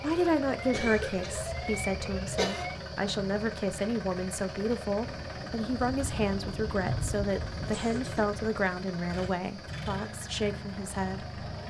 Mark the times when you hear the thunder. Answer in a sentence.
You can hear the thunder from 5.0 to 8.5 s.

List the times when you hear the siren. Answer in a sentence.
You can hear the siren from 0.0 to 2.8 s.